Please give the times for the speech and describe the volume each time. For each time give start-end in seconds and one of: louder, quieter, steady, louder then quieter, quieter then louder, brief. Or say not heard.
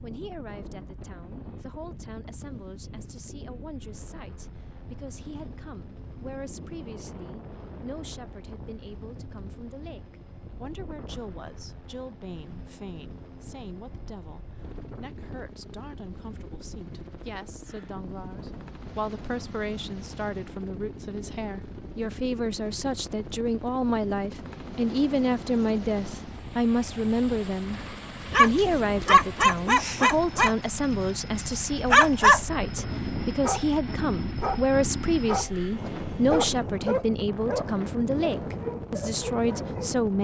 0.0-40.1 louder.